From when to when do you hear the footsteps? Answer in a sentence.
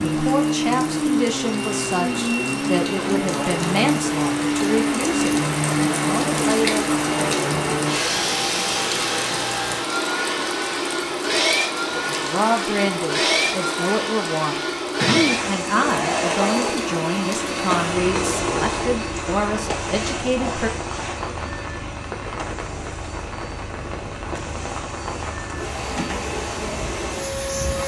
You can't hear the footsteps here.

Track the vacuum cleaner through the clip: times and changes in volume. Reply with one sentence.
You can hear the vacuum cleaner from 0.0 to 27.8 s, getting quieter.